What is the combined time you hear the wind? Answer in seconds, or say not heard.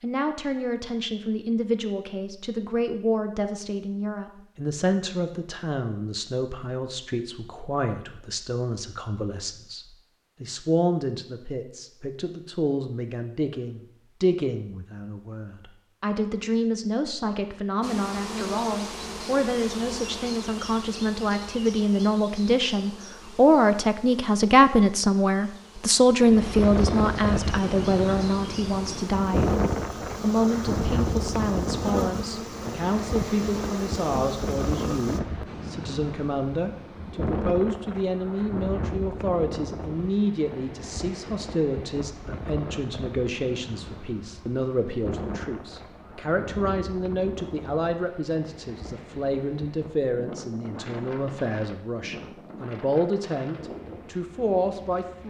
29 s.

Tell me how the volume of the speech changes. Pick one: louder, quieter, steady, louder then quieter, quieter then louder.
louder then quieter.